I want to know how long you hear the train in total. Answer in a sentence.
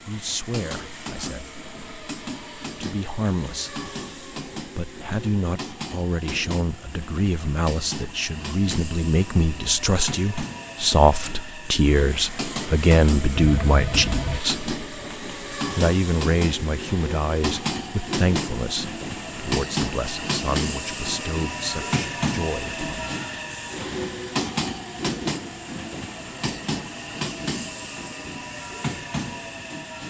The train can be heard for 30 seconds in total.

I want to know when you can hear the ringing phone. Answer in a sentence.
You can hear the ringing phone from 13.3 to 14.4 s.